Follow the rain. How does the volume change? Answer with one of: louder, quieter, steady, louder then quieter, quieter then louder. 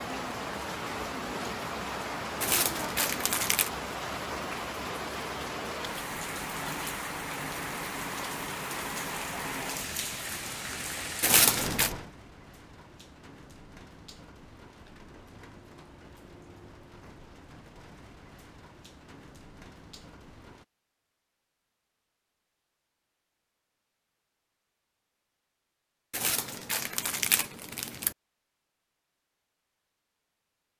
quieter.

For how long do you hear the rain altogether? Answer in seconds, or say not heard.
21 s.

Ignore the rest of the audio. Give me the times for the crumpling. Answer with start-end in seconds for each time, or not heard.
2.4-3.7, 11.2-11.9, 26.1-28.1.